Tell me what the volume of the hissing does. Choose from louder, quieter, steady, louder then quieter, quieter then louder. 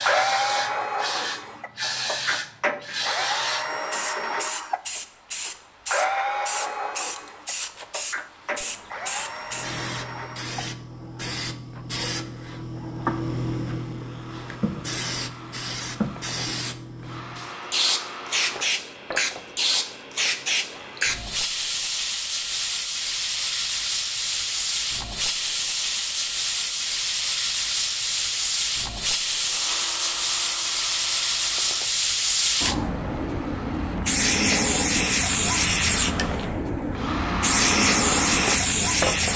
louder.